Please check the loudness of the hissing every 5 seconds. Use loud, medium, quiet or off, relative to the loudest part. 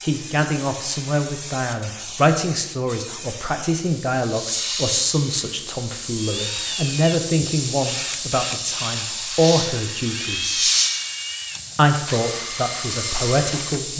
medium, loud, loud.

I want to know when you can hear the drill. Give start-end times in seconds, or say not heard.
6.2-13.8.